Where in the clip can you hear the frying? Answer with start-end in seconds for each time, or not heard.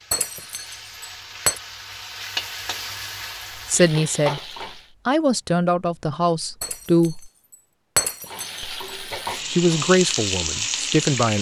0.0-5.0, 8.2-11.3.